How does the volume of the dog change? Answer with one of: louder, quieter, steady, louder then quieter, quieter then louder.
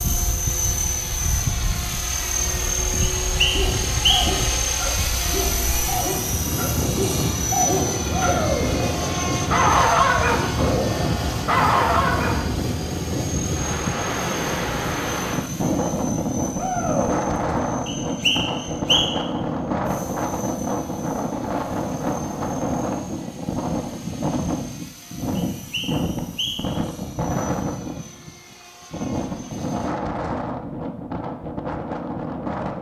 louder.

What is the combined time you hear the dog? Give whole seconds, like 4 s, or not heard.
9 s.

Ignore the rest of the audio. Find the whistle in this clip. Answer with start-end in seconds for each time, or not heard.
3.0-4.3, 17.9-19.1, 25.4-26.8.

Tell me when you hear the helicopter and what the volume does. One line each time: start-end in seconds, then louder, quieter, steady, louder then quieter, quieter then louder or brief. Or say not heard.
0.0-29.9 quieter.